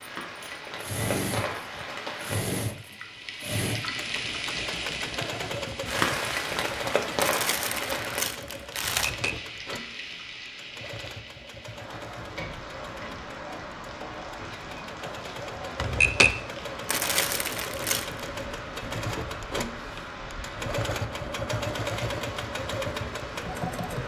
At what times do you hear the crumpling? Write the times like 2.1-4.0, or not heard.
7.2-9.1, 16.9-18.2.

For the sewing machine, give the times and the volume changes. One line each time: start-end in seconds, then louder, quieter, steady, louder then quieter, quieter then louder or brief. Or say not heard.
0.1-24.0 quieter then louder.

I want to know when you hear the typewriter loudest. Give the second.
16 s.